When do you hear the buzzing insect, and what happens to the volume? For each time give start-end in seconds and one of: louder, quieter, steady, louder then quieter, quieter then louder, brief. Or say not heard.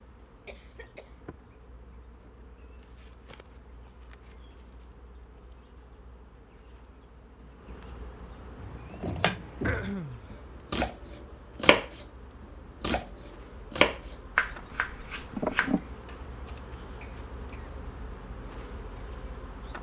0.0-19.7 louder.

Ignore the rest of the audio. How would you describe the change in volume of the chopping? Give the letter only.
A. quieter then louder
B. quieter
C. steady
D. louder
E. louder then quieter
E.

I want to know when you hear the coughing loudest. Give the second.
10 s.